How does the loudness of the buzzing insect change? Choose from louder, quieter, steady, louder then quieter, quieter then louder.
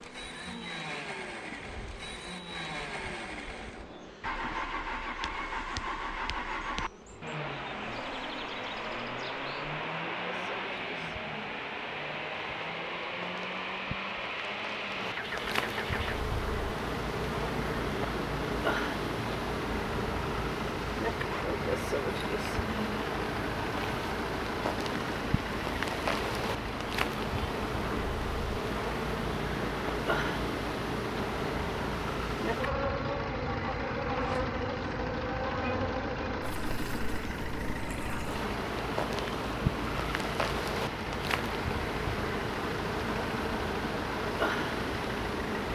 louder.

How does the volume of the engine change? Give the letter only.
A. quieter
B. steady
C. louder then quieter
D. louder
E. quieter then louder
B.